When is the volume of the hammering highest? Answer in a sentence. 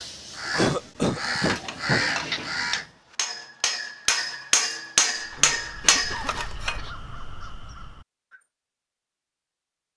The volume of the hammering peaks at 5 seconds.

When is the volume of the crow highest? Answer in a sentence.
The volume of the crow peaks at 2 seconds.